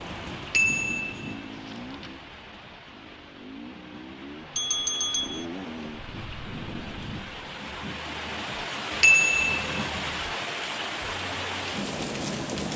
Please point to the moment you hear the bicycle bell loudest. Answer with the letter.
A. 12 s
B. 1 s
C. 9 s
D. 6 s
C.